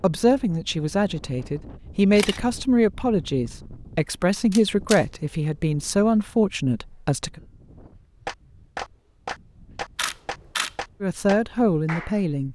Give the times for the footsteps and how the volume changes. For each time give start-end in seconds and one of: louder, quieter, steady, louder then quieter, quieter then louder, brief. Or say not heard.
not heard.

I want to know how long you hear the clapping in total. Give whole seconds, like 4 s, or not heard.
4 s.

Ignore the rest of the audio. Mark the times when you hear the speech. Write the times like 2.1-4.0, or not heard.
0.0-7.4, 11.0-12.5.